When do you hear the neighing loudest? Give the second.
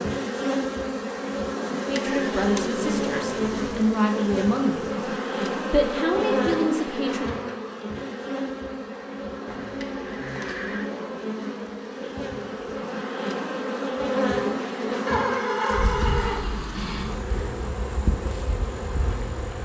16 s.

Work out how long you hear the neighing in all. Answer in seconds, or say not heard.
5 s.